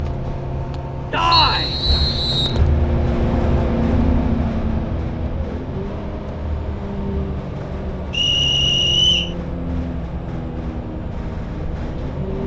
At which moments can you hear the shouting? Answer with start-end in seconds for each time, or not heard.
1.1-1.8.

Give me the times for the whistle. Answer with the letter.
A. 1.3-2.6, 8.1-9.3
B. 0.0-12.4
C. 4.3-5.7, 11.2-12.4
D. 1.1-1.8
A.